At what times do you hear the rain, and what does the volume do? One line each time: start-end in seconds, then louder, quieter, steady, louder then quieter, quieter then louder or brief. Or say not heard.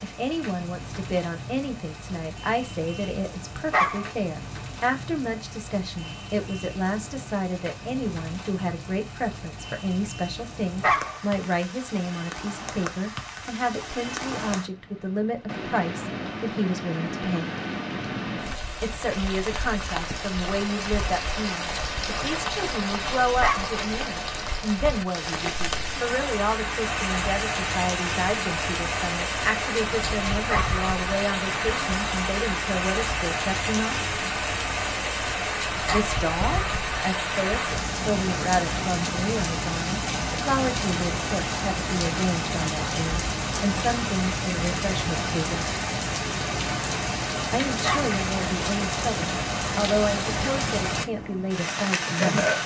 0.0-52.6 louder.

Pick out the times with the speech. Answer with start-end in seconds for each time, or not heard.
0.0-17.5, 18.8-34.0, 35.9-45.6, 47.5-52.5.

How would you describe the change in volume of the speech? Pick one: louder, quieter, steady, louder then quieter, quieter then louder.
steady.